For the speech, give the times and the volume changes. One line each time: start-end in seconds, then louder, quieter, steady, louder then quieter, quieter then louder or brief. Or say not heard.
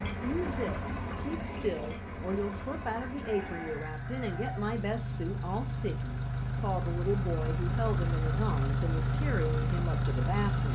0.2-10.6 steady.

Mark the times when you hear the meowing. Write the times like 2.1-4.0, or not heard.
not heard.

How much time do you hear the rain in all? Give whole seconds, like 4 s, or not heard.
not heard.